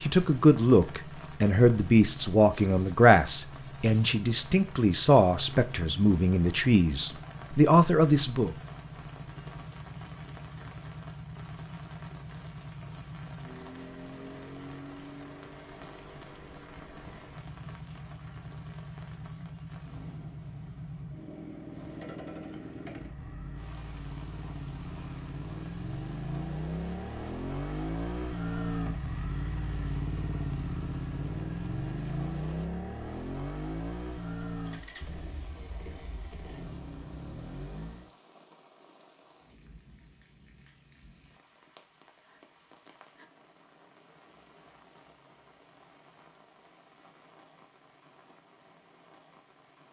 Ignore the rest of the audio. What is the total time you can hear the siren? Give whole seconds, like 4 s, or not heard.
not heard.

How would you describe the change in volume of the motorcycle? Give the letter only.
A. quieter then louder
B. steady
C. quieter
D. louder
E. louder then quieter
D.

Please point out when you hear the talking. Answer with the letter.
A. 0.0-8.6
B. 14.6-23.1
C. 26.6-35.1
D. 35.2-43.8
A.